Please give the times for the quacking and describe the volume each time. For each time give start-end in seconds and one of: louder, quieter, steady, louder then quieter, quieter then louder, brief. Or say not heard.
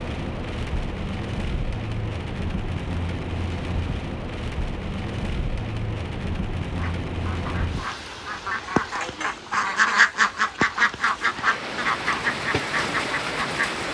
6.8-13.7 louder then quieter.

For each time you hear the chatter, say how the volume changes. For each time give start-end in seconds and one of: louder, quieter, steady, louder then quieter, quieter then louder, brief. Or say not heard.
not heard.